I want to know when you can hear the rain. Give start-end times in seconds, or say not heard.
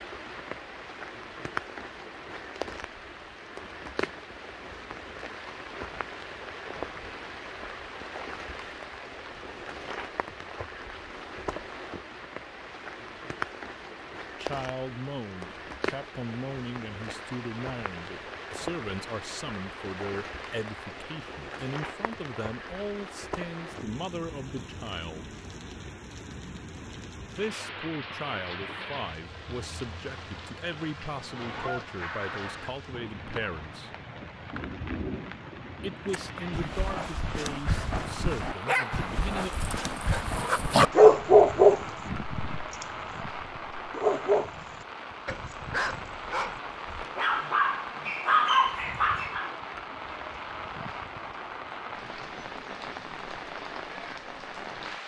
0.0-55.0.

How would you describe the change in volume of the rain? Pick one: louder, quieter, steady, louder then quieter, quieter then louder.
steady.